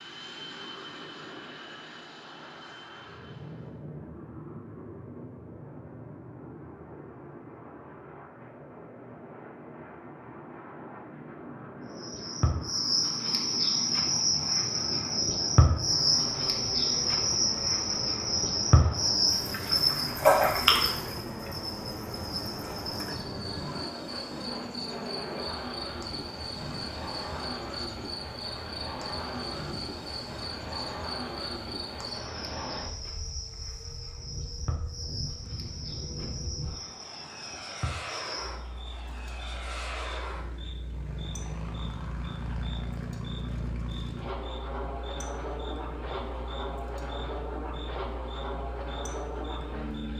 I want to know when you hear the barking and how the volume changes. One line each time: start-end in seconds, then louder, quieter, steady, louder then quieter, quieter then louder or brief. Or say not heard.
not heard.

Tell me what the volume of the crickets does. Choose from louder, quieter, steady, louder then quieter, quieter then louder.
quieter.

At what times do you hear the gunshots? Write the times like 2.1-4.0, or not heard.
not heard.